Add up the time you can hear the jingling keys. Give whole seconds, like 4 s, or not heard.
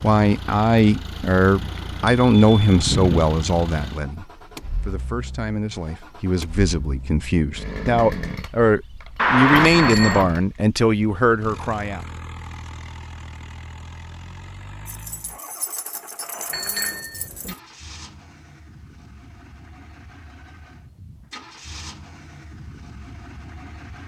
3 s.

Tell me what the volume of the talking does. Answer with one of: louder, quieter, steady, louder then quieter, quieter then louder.
quieter then louder.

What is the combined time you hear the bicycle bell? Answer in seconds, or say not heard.
4 s.